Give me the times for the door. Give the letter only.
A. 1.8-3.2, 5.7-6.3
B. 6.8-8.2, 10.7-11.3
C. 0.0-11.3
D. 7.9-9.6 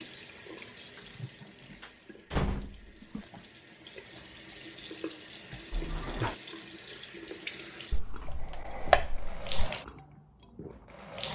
A.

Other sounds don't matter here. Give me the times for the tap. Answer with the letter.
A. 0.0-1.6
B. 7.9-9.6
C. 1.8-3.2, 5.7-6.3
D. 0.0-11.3
D.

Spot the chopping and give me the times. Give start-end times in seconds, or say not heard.
7.9-9.6.